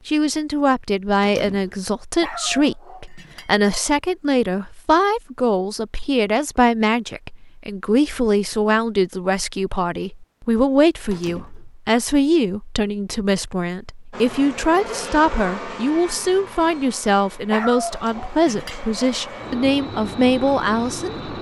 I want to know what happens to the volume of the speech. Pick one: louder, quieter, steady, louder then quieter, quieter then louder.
steady.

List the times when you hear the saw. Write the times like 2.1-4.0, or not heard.
not heard.